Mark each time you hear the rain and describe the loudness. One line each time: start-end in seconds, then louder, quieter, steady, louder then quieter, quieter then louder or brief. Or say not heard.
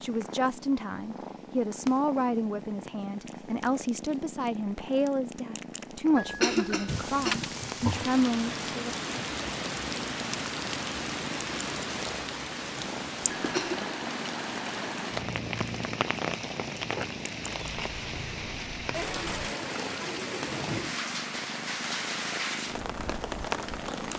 6.8-24.1 steady.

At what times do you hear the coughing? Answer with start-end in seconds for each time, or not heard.
6.2-7.5, 13.3-13.9.